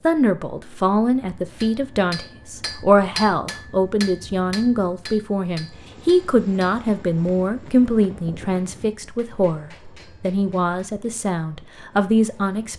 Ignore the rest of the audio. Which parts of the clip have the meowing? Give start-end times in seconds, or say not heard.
not heard.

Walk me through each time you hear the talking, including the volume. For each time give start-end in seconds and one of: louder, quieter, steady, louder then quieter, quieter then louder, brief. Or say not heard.
0.1-12.7 steady.